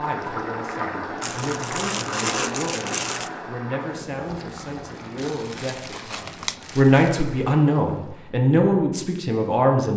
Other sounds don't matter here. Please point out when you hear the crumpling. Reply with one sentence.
You can hear the crumpling from 1.2 to 3.3 s and from 5.2 to 7.2 s.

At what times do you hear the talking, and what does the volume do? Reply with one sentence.
The talking can be heard from 0.0 to 9.9 s, getting louder.